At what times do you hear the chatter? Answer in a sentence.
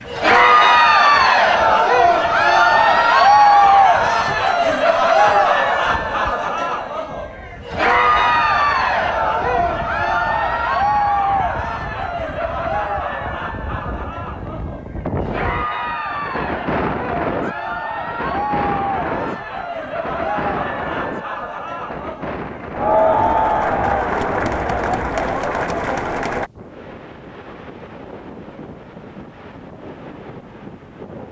You can hear the chatter from 0.0 to 26.5 s.